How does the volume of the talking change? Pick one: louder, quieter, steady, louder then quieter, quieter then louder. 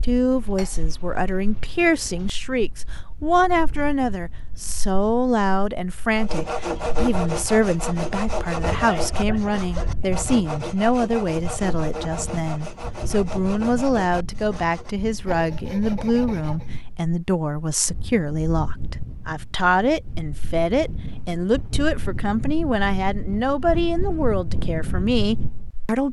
steady.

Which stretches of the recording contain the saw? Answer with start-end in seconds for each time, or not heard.
6.2-16.7.